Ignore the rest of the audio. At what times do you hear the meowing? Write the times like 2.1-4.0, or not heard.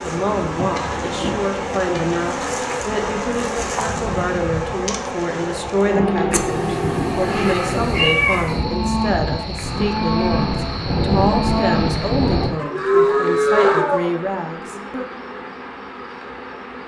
6.3-8.7.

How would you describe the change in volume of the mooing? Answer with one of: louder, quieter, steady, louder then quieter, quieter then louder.
louder.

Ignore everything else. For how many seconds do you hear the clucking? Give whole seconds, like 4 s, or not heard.
not heard.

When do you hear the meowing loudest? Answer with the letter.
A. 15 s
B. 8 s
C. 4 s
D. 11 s
B.